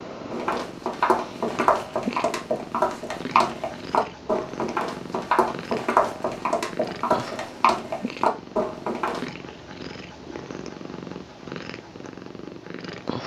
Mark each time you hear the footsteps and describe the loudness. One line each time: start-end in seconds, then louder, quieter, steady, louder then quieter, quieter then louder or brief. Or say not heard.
0.3-9.2 steady.